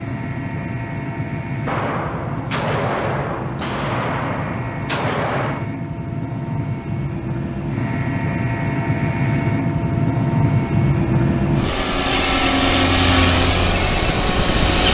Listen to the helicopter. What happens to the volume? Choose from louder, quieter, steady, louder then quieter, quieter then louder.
louder.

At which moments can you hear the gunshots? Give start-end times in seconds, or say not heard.
1.6-5.7.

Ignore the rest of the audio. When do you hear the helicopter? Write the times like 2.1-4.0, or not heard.
0.0-14.8.